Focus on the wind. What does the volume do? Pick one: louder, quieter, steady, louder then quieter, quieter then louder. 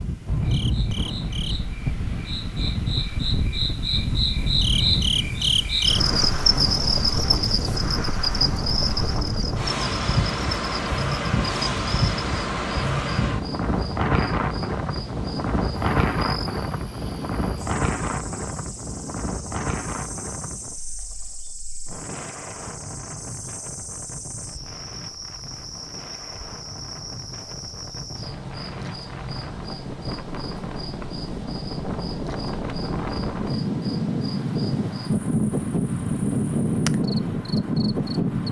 quieter then louder.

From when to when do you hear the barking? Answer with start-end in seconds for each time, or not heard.
not heard.